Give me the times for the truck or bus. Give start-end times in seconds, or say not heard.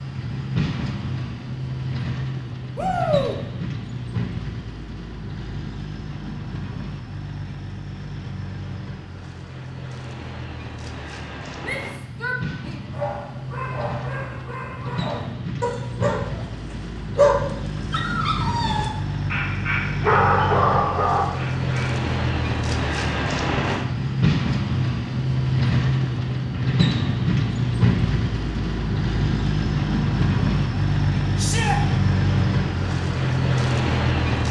0.0-34.4.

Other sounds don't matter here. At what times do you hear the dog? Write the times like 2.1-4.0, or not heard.
12.9-21.9.